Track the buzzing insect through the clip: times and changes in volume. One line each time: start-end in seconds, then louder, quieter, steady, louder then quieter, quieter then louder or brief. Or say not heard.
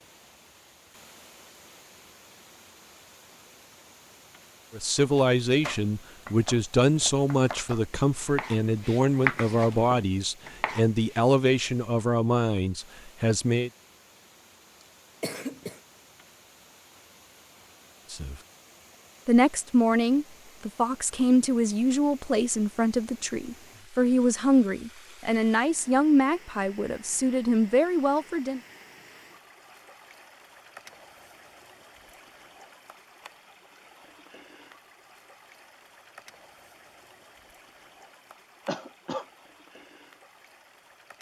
not heard.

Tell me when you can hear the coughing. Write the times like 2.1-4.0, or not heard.
15.2-15.8, 38.6-39.2.